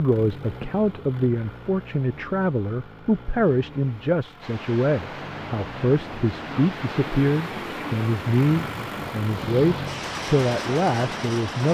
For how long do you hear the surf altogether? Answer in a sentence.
The surf can be heard for 7 seconds in total.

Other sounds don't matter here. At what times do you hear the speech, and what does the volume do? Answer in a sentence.
You can hear the speech from 0.0 to 11.6 s, at a steady volume.